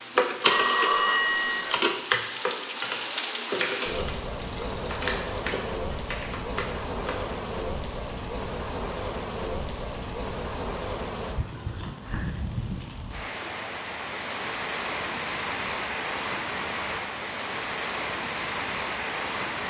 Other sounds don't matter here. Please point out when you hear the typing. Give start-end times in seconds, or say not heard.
0.1-7.2.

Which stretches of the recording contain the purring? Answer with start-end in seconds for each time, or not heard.
not heard.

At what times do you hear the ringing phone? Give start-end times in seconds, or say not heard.
0.4-1.9.